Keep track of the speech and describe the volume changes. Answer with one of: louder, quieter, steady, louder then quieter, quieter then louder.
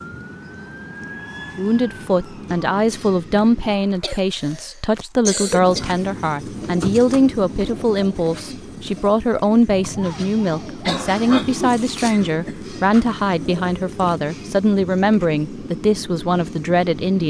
steady.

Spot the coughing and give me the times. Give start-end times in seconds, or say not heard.
3.6-5.8, 10.8-12.6.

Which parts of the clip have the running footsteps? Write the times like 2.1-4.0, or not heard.
not heard.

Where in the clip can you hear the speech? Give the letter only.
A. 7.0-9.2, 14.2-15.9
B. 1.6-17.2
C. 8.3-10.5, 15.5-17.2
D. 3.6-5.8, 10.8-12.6
B.